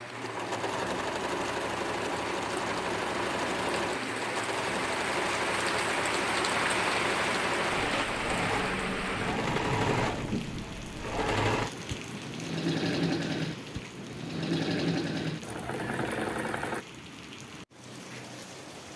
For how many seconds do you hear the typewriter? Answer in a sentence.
You can't hear the typewriter here.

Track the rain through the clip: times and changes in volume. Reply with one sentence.
The rain can be heard from 0.0 to 18.9 s, getting louder then quieter.